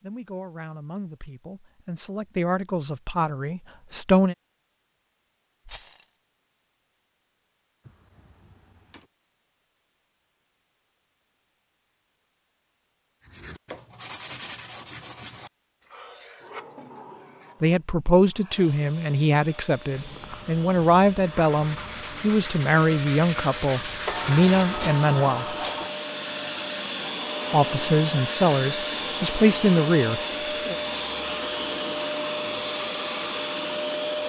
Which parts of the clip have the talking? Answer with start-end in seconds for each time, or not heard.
0.0-4.3, 17.6-25.6, 27.5-30.8.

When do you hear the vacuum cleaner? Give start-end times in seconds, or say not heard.
18.4-34.2.